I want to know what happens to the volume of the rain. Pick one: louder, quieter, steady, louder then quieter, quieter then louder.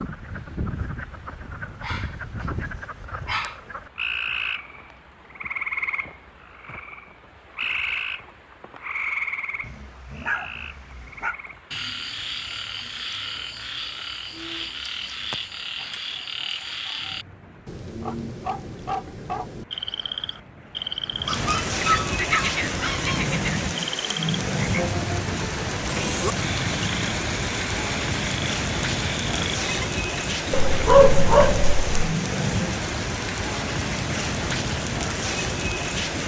louder.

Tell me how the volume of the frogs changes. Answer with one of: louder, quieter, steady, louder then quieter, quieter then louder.
steady.